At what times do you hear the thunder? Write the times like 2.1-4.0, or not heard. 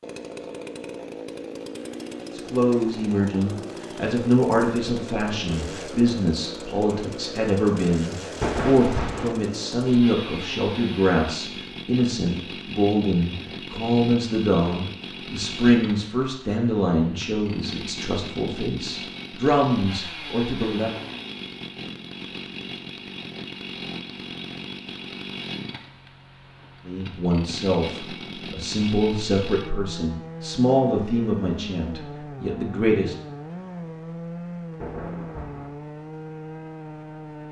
8.4-9.3, 34.8-35.8.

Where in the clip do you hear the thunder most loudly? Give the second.
9 s.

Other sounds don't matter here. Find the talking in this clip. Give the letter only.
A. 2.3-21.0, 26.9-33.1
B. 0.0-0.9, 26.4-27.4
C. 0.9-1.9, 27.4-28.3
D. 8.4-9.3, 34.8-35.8
A.